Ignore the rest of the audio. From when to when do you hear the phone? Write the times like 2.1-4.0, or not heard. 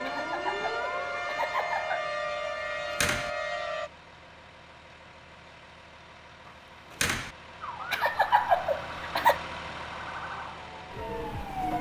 not heard.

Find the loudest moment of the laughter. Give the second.
8 s.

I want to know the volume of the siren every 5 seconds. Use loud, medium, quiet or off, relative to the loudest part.
loud, medium, loud.